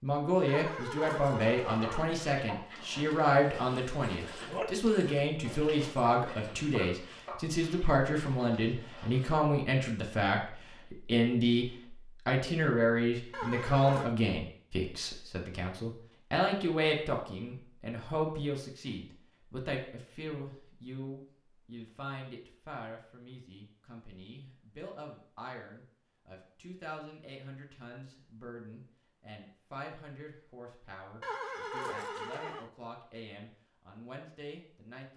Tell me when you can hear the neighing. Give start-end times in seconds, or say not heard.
0.5-2.2, 13.3-14.1, 31.2-32.7.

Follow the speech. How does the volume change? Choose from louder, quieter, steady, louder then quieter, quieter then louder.
quieter.